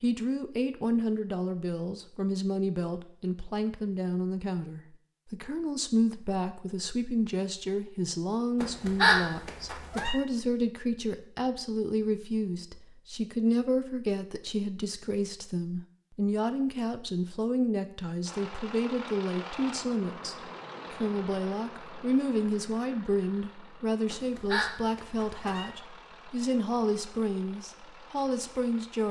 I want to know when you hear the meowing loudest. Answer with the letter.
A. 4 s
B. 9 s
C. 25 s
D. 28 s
B.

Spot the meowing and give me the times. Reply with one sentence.
The meowing can be heard from 8.6 to 10.2 s and from 24.1 to 25.7 s.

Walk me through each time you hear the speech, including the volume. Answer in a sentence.
The speech can be heard from 0.0 to 29.0 s, at a steady volume.